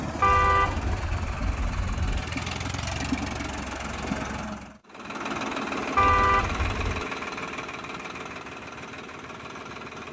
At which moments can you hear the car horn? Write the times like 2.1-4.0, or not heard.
0.2-2.2, 6.0-7.0.